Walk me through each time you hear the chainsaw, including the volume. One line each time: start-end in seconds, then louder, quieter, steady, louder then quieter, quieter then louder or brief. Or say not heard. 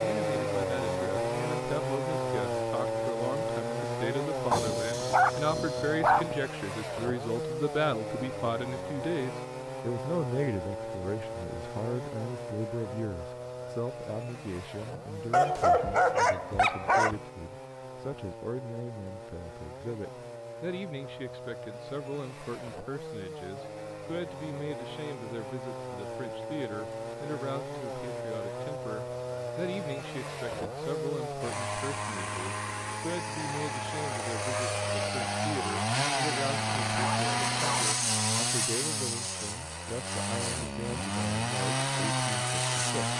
0.0-43.1 quieter then louder.